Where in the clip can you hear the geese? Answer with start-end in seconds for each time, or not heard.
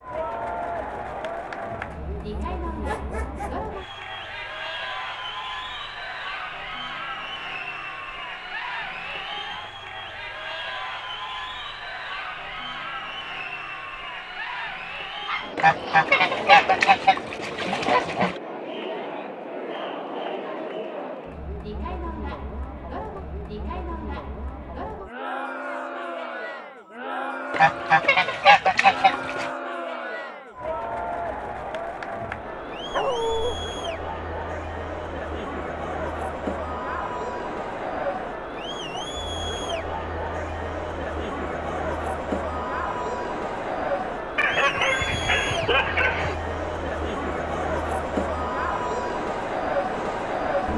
15.6-18.4, 27.5-29.5.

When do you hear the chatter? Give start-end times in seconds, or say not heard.
0.0-50.7.